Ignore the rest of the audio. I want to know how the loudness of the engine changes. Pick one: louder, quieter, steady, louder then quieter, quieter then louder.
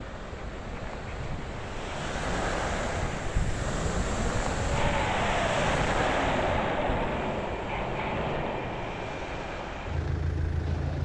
louder then quieter.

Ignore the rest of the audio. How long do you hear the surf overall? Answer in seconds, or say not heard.
11 s.